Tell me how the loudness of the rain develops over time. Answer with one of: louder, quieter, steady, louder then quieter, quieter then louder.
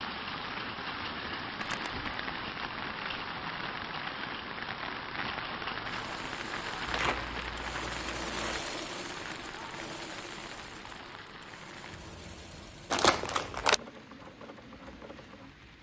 quieter.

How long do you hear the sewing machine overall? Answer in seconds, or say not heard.
10 s.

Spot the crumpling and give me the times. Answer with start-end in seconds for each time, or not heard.
1.6-2.1, 6.8-8.6, 12.9-13.8.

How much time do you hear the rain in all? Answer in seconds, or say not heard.
16 s.